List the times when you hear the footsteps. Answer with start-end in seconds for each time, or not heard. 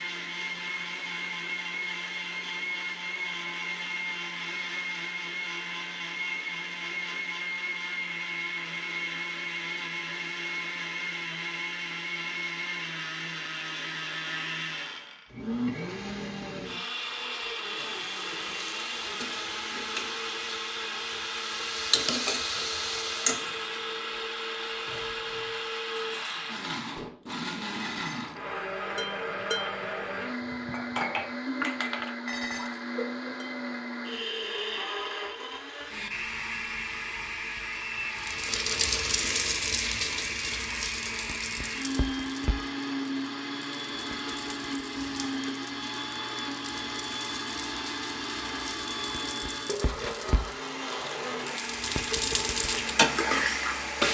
not heard.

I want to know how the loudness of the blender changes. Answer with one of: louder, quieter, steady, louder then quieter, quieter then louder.
steady.